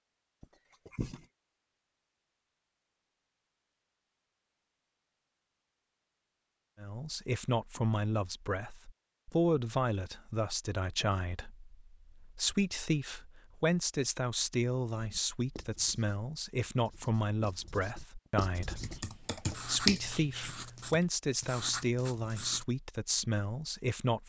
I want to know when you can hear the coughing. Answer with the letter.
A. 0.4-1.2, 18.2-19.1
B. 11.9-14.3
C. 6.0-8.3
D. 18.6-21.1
A.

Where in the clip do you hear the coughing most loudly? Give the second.
1 s.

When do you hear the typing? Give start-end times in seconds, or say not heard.
18.6-21.1.